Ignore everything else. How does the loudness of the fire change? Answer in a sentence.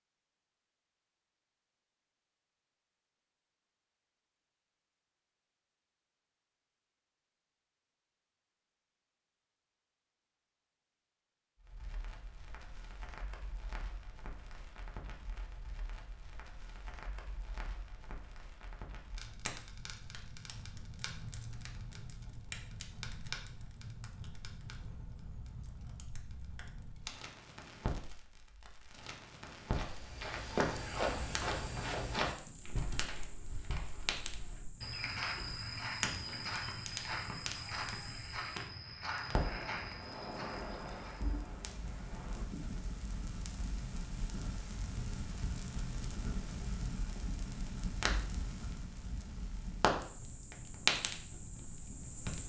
The loudness of the fire goes up.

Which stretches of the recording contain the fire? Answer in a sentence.
You can hear the fire from 11.6 to 52.4 s.